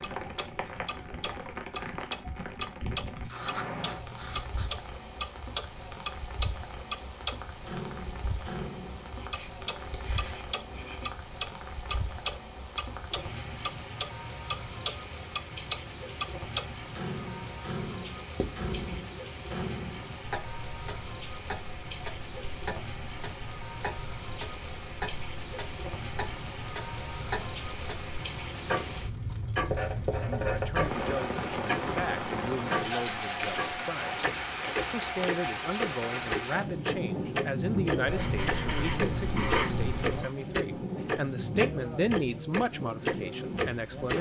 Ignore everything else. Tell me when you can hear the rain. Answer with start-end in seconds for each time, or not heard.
0.0-44.1.